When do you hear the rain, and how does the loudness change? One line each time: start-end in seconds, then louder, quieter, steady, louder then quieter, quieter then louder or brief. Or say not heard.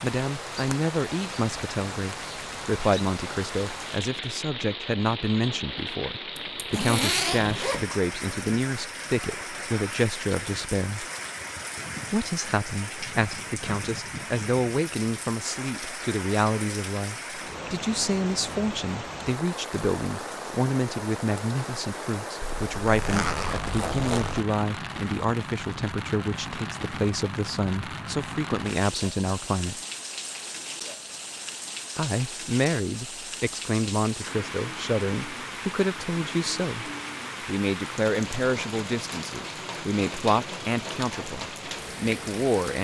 0.0-42.7 steady.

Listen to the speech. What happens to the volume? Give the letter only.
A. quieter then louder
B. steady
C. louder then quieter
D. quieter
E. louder
B.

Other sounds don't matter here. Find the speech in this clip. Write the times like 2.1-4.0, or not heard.
0.0-11.1, 12.1-29.8, 31.9-42.7.